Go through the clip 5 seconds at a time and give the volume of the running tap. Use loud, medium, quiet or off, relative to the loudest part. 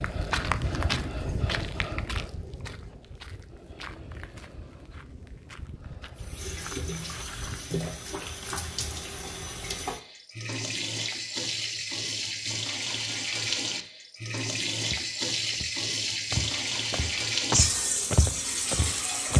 off, medium, loud, loud.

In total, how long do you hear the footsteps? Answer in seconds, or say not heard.
12 s.